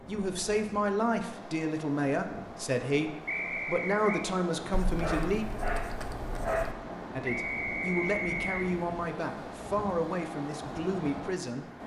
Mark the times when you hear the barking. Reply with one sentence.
The barking can be heard from 4.7 to 6.8 s.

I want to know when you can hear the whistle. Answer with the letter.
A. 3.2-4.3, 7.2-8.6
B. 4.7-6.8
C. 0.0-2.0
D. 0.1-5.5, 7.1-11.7
A.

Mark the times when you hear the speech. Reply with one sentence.
The speech can be heard from 0.1 to 5.5 s and from 7.1 to 11.7 s.